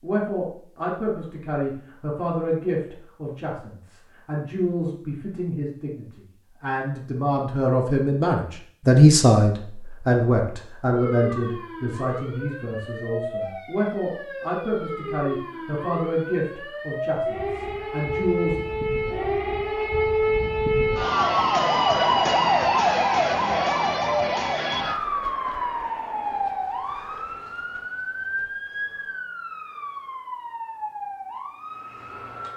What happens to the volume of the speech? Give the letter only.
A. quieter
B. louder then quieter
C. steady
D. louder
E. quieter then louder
B.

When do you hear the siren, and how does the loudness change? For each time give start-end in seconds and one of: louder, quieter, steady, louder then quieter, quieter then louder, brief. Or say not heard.
10.9-32.5 louder then quieter.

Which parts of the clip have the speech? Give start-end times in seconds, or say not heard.
0.0-18.6.